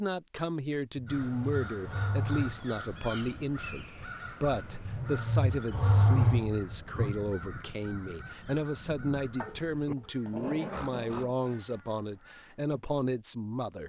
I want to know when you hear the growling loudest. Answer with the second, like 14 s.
6 s.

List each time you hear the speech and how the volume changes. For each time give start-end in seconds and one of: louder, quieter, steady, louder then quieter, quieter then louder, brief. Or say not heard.
0.0-13.8 steady.